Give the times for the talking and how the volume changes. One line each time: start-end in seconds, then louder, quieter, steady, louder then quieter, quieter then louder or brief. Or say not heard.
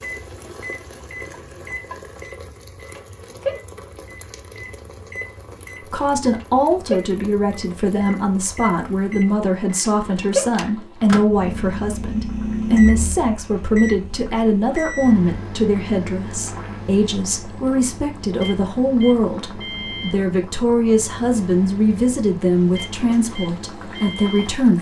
5.9-24.7 steady.